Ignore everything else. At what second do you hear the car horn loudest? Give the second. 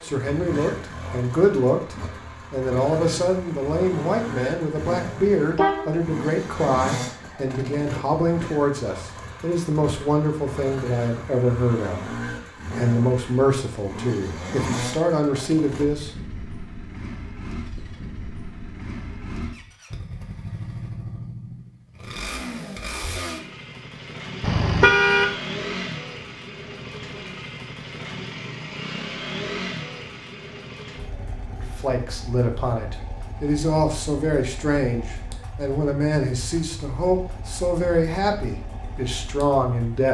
25 s.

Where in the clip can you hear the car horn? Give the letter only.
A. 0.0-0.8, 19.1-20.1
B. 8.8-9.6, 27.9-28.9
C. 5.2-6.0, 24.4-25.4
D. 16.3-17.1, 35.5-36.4
C.